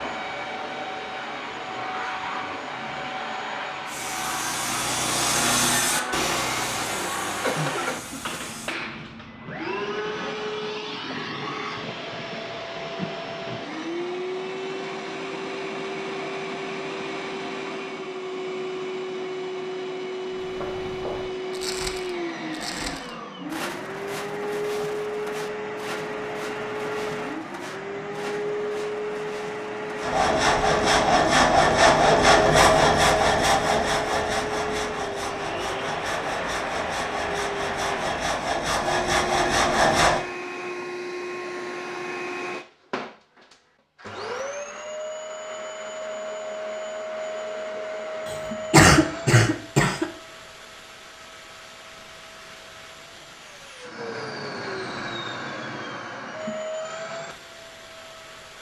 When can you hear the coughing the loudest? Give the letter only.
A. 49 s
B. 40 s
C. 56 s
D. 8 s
A.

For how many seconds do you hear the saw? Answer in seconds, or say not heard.
15 s.